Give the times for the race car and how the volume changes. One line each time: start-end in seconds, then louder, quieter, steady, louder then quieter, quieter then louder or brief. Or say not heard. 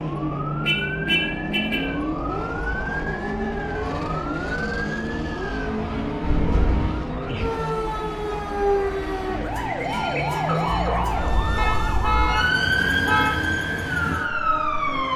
0.0-15.1 quieter.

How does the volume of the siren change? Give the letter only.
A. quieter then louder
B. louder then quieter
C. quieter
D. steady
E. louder
E.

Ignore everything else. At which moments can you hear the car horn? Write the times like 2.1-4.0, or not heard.
0.6-1.9, 6.2-7.0, 11.6-13.4.